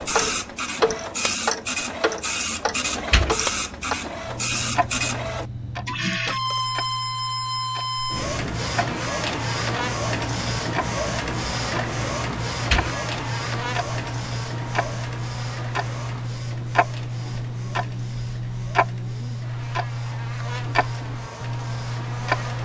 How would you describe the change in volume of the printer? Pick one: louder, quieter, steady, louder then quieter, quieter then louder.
quieter.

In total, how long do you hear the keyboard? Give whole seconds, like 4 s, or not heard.
not heard.